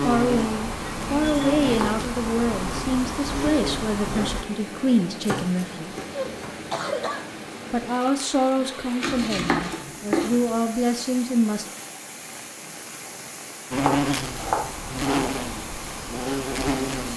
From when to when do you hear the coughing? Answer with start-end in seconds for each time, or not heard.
6.1-7.3.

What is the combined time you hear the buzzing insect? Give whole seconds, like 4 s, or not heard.
8 s.